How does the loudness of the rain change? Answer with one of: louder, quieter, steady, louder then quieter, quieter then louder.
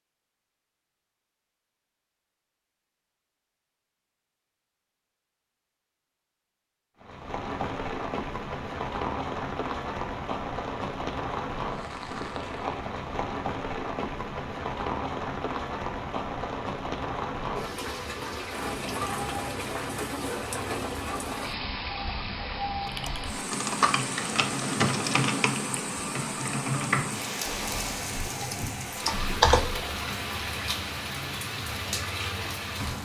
steady.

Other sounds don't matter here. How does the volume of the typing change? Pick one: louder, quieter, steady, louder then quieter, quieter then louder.
quieter then louder.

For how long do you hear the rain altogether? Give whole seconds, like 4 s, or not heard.
26 s.